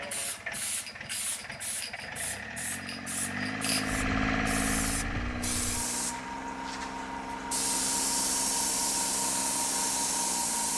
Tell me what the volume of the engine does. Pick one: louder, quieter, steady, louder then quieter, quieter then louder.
louder then quieter.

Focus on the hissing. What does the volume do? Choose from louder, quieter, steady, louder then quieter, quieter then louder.
louder.